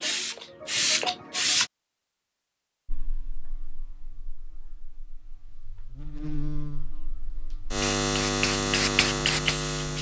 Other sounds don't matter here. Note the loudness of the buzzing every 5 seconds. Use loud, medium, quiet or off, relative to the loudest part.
quiet, loud.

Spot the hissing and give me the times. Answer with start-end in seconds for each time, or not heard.
0.0-1.7, 7.8-9.9.